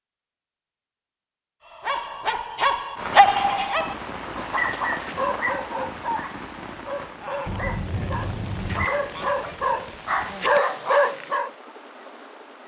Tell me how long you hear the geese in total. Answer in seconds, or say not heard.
4 s.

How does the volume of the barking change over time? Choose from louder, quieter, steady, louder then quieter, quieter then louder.
quieter then louder.